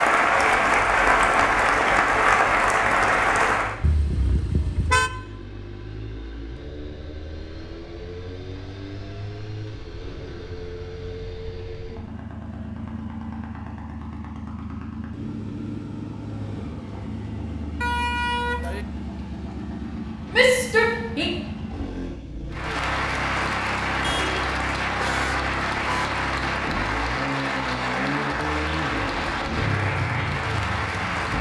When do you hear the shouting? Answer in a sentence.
You can hear the shouting from 20.3 to 21.3 s.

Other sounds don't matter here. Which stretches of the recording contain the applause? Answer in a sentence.
The applause can be heard from 0.0 to 3.8 s and from 22.5 to 31.3 s.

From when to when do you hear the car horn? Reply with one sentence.
You can hear the car horn from 3.8 to 5.1 s, from 17.8 to 18.9 s and from 24.0 to 26.1 s.